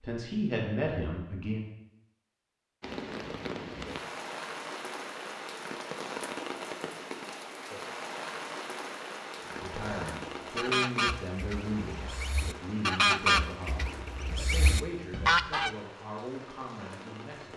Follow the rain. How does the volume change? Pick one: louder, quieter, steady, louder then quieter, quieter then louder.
quieter.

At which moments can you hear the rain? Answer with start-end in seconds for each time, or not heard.
2.8-17.5.